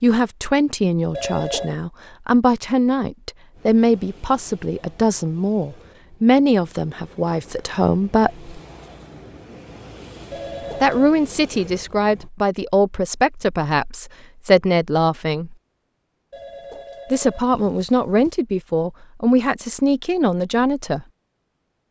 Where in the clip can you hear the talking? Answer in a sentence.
The talking can be heard from 0.0 to 8.5 s, from 10.8 to 15.6 s and from 17.1 to 21.1 s.